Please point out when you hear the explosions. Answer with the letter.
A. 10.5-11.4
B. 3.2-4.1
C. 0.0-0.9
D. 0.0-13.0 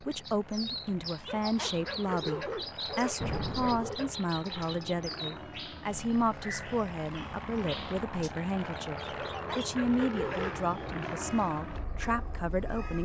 B.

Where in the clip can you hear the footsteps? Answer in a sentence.
You can't hear the footsteps here.